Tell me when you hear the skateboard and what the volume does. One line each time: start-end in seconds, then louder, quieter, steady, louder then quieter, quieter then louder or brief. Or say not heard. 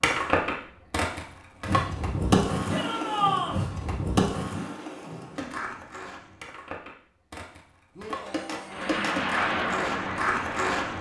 0.0-10.9 quieter then louder.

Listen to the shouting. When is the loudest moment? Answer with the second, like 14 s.
3 s.